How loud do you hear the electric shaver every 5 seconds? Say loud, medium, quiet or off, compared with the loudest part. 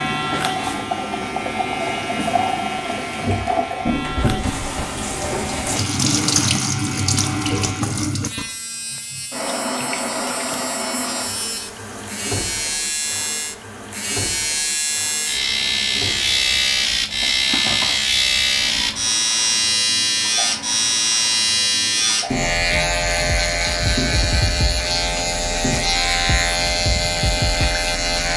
medium, quiet, medium, loud, loud, loud.